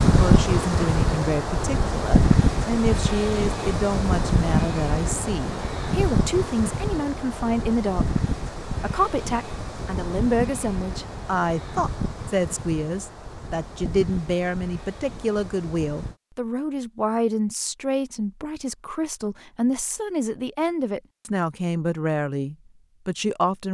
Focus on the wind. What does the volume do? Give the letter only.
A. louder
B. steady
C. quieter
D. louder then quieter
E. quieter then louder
C.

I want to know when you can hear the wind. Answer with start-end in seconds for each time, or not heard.
0.0-16.1.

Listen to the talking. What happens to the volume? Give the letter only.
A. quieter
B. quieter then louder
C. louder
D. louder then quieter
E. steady
E.